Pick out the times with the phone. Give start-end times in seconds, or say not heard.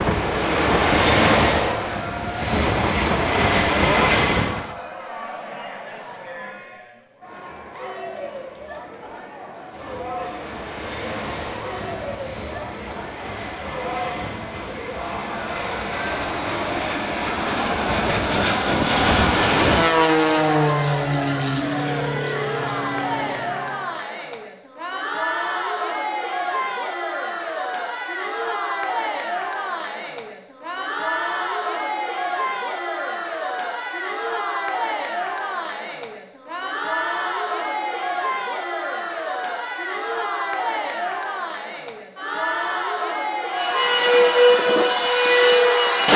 not heard.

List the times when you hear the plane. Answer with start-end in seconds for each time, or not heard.
0.0-4.8, 9.7-23.9, 43.5-46.1.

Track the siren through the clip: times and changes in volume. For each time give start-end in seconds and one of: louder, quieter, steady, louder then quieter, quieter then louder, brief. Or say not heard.
not heard.